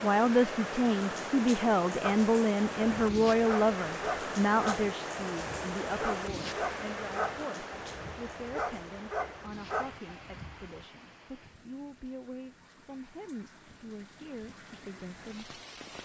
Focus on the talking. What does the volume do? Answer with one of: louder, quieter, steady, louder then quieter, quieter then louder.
quieter.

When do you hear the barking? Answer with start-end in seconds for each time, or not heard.
2.0-10.8.